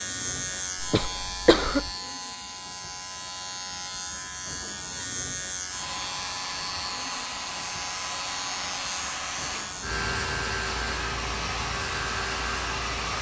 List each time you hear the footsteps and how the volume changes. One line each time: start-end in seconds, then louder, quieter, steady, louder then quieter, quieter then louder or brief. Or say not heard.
not heard.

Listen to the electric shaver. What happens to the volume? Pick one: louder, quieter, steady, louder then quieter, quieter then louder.
steady.